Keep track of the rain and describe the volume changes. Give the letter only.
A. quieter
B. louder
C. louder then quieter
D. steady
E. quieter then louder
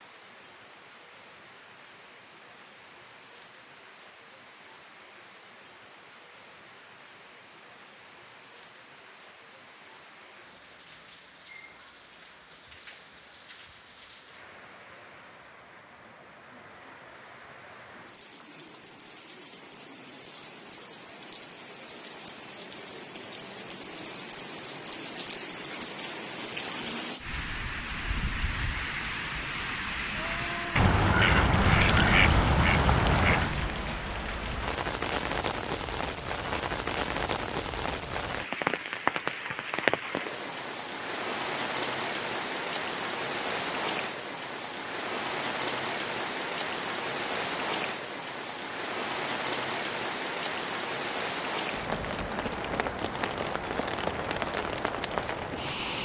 B.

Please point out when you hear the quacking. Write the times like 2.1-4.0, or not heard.
30.8-33.6.